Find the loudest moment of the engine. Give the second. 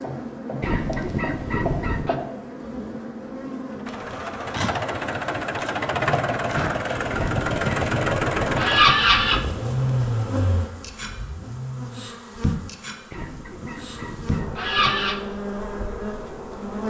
8 s.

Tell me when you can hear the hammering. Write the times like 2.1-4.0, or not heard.
not heard.